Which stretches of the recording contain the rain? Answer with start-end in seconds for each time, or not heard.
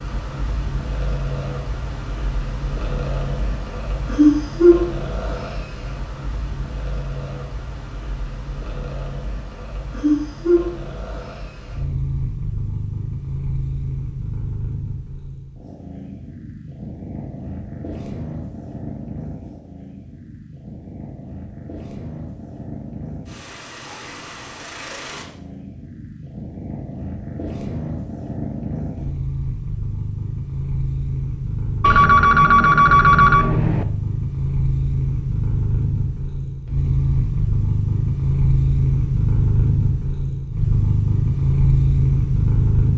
not heard.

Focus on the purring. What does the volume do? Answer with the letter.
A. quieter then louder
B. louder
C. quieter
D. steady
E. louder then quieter
A.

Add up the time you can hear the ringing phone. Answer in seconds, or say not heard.
2 s.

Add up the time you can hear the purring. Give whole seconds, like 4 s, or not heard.
43 s.